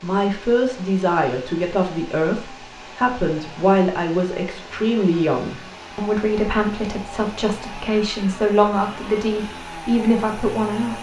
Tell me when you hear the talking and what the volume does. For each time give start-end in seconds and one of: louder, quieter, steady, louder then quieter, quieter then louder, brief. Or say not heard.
0.0-10.9 steady.